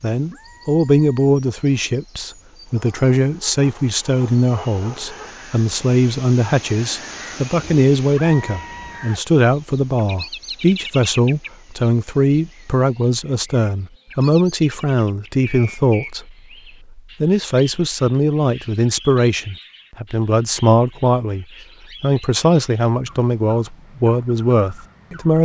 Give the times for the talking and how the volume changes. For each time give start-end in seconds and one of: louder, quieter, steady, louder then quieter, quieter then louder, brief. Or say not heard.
0.0-25.4 steady.